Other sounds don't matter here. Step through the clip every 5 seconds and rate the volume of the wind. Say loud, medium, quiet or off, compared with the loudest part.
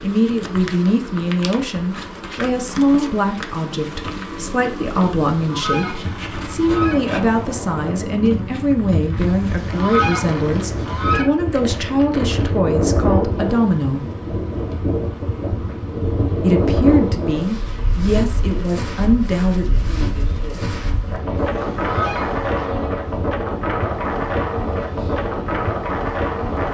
off, medium, loud, loud, loud, loud.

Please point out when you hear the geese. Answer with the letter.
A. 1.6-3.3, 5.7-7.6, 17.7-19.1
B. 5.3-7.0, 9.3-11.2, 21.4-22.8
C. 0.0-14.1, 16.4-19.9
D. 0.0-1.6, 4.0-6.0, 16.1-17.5
B.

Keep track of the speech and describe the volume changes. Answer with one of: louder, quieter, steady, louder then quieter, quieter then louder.
steady.